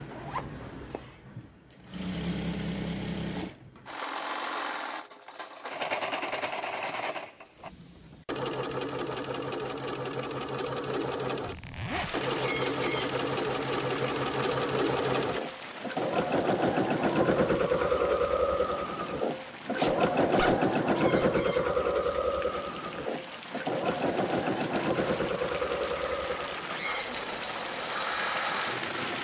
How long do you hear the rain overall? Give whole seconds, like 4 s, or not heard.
17 s.